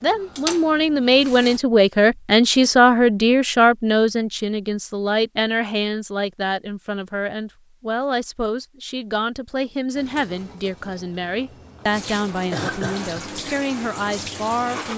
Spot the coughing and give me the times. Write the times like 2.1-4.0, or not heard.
12.4-13.3.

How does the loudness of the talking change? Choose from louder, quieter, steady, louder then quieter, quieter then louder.
quieter.